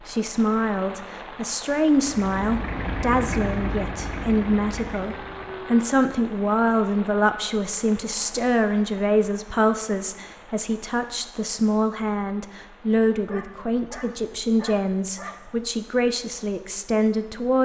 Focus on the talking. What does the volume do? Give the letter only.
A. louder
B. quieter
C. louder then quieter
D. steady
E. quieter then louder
D.